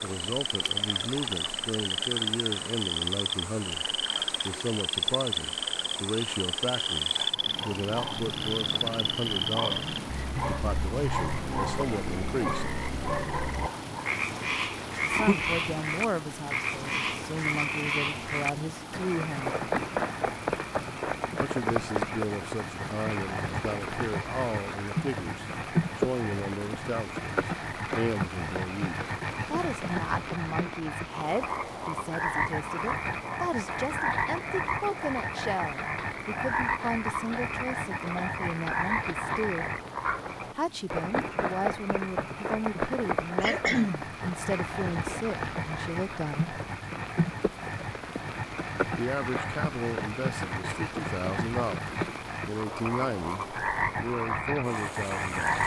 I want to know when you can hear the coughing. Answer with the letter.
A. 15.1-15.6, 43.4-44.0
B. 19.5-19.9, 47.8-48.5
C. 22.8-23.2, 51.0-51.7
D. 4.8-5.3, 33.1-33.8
A.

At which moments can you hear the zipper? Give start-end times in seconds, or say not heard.
not heard.